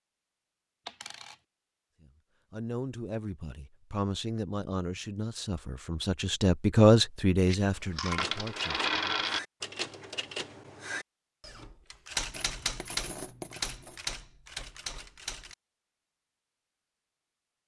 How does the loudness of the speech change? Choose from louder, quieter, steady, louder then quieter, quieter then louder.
louder then quieter.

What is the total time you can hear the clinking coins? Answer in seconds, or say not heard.
4 s.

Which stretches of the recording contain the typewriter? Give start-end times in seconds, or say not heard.
8.2-15.6.